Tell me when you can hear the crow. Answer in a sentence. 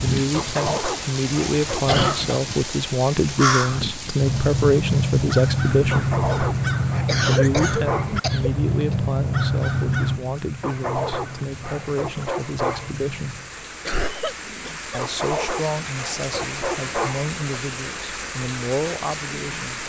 The crow can be heard from 3.3 to 13.6 s.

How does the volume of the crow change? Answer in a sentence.
The volume of the crow goes down.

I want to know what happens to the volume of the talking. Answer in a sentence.
The loudness of the talking goes down.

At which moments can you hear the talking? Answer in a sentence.
The talking can be heard from 0.0 to 6.2 s, from 7.2 to 13.4 s and from 14.9 to 19.8 s.